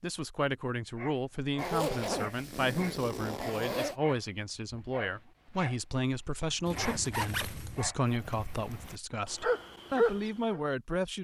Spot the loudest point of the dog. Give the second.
10 s.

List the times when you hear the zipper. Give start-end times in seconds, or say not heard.
1.6-4.0, 6.7-8.0.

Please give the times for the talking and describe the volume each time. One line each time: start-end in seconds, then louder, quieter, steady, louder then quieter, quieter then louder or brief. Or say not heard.
0.0-11.1 steady.